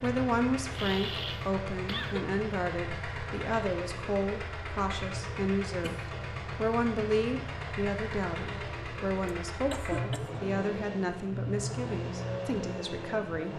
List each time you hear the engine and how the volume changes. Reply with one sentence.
You can hear the engine from 0.0 to 13.5 s, at a steady volume.